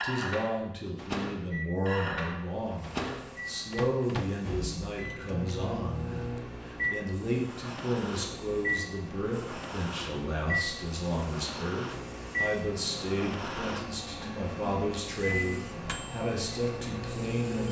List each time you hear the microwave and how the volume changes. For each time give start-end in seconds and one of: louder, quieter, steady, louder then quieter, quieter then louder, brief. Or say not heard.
0.0-17.6 steady.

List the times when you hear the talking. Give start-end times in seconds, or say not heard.
0.0-17.6.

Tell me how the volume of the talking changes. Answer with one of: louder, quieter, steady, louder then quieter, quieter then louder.
steady.